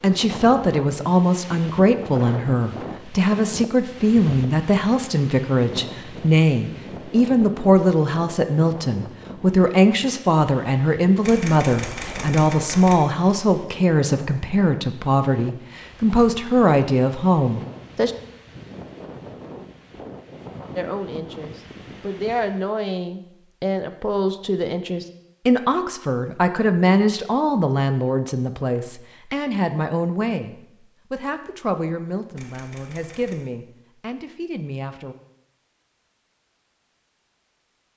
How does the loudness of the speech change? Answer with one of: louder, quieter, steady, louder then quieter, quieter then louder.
quieter.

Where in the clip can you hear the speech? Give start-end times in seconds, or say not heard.
0.0-18.1, 20.8-35.1.